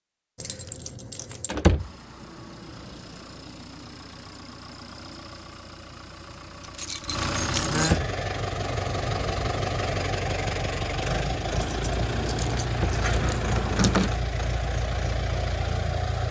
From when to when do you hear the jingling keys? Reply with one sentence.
The jingling keys can be heard from 0.3 to 1.6 s, from 6.6 to 8.0 s and from 11.6 to 14.2 s.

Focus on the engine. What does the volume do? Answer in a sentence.
The volume of the engine goes up.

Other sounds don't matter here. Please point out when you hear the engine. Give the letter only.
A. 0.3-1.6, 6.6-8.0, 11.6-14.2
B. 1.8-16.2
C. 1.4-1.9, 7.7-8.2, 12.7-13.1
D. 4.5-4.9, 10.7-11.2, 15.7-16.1
B.